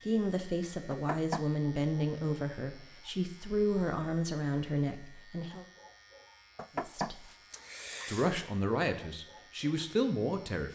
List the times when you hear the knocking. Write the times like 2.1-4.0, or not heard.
0.9-1.4, 6.5-8.4.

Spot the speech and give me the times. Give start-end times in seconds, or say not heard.
0.0-5.7, 6.8-7.2, 8.1-10.7.